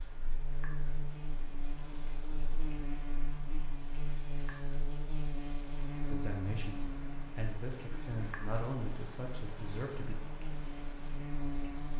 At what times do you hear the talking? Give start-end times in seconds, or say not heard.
6.0-10.2.